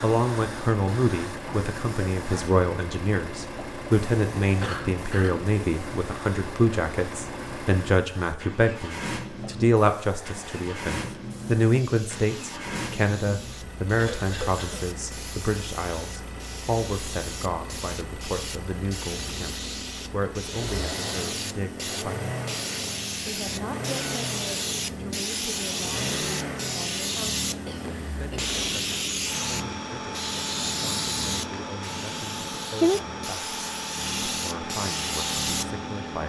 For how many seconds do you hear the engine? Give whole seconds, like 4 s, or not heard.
36 s.